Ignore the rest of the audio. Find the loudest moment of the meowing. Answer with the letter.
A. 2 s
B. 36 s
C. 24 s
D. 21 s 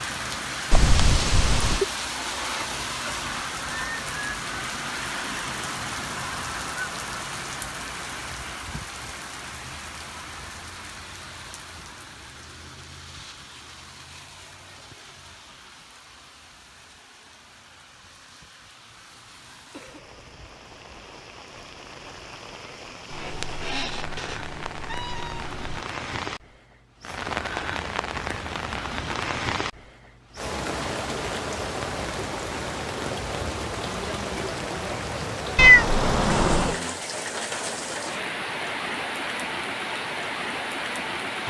B.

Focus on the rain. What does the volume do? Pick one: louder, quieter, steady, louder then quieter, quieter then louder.
quieter then louder.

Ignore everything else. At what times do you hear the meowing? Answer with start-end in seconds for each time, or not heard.
0.7-1.9, 23.1-25.8, 35.5-36.8.